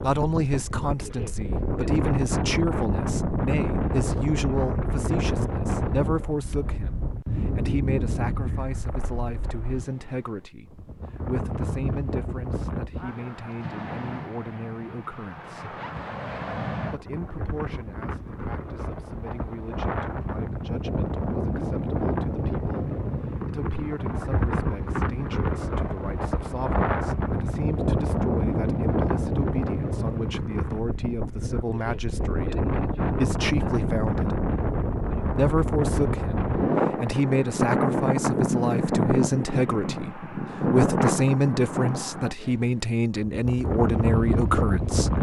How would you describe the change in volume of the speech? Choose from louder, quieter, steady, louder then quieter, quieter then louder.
quieter then louder.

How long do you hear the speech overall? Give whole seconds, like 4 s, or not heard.
43 s.